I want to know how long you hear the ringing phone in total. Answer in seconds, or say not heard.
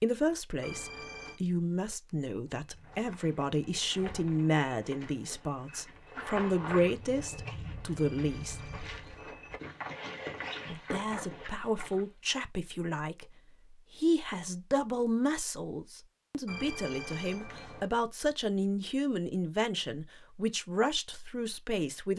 4 s.